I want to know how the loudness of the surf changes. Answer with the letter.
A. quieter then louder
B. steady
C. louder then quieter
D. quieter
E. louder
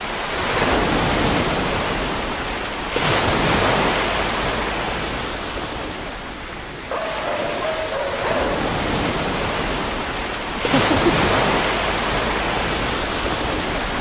A.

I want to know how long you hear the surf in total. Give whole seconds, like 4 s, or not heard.
14 s.